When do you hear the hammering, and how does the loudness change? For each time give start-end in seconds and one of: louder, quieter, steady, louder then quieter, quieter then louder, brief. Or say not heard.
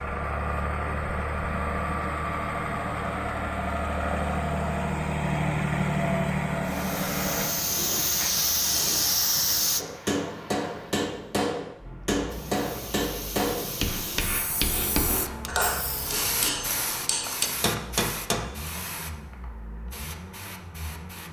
9.8-18.5 steady.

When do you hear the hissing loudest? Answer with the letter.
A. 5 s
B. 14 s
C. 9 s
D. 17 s
C.